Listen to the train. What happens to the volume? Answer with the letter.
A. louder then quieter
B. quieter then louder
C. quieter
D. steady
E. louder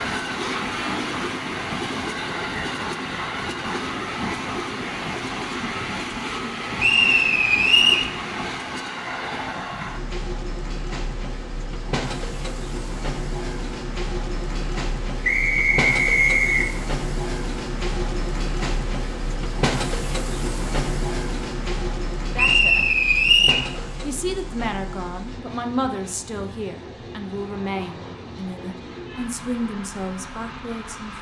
C.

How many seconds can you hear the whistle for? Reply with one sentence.
The whistle can be heard for 4 seconds in total.